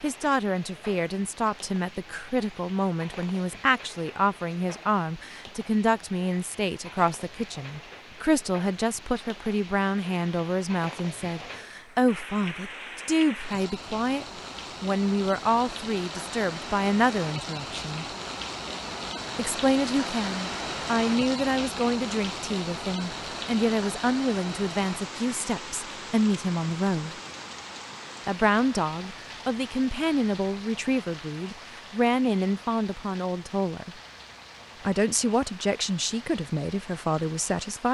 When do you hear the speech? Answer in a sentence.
You can hear the speech from 0.0 to 18.1 s, from 19.4 to 27.1 s, from 28.2 to 34.0 s and from 34.9 to 37.9 s.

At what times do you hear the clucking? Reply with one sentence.
The clucking can't be heard in this clip.